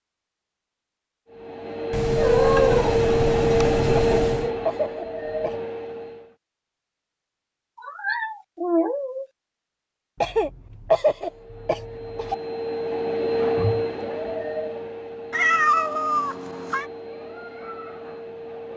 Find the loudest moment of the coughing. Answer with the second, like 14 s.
11 s.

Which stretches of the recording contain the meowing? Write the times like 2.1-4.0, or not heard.
1.9-4.5, 7.8-9.2, 15.3-16.9.